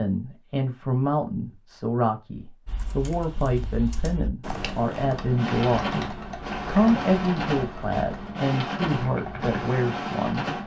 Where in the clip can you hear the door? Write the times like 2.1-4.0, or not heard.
not heard.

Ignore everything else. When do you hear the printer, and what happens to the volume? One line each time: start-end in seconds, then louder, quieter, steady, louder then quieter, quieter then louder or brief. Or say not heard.
4.5-10.6 steady.